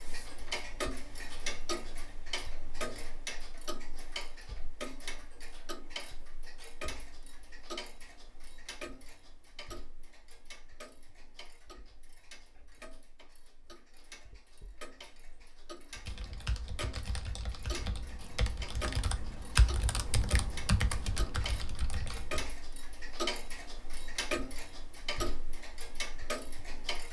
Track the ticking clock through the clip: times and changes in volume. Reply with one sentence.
The ticking clock can be heard from 0.0 to 27.0 s, getting quieter then louder.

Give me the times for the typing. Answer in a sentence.
The typing can be heard from 16.1 to 22.4 s.